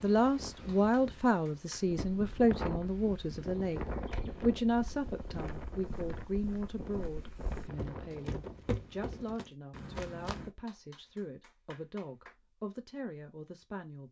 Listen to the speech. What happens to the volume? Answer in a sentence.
The loudness of the speech goes down.